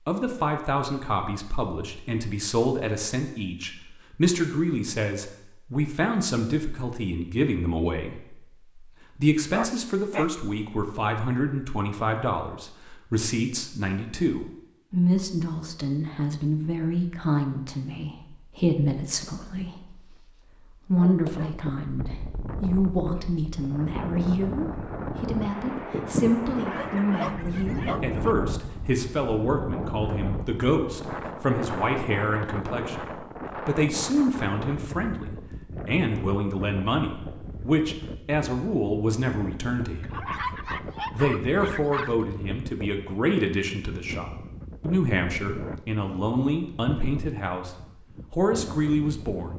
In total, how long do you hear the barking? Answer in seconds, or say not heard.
5 s.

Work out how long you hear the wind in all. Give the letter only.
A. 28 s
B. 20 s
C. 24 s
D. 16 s
A.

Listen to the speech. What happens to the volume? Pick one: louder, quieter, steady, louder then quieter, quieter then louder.
steady.